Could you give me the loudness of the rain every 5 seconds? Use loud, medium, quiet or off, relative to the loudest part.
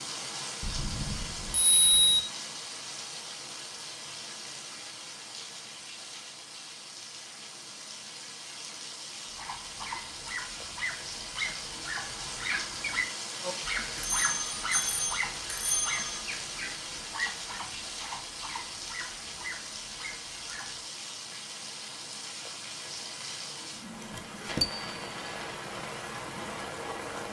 loud, medium, loud, loud, loud, loud.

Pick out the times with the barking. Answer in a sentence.
The barking can be heard from 9.3 to 20.8 s.